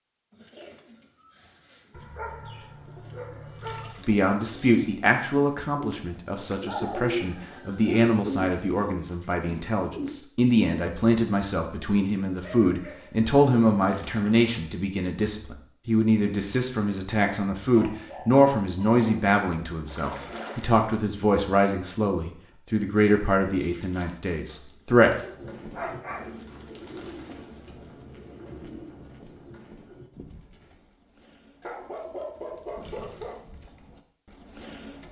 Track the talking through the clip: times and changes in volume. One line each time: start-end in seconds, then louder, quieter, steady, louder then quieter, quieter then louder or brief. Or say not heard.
4.0-25.2 steady.